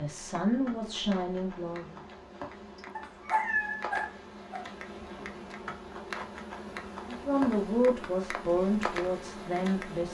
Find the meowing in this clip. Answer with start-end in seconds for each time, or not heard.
2.8-3.9.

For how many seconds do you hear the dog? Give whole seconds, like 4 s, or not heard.
2 s.